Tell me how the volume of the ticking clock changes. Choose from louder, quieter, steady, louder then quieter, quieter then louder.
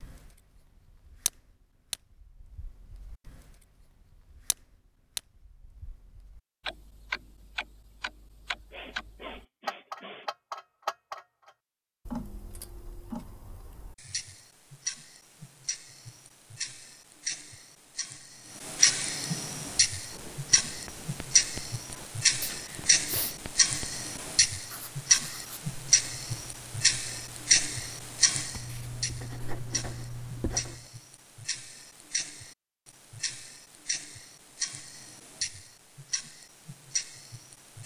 louder then quieter.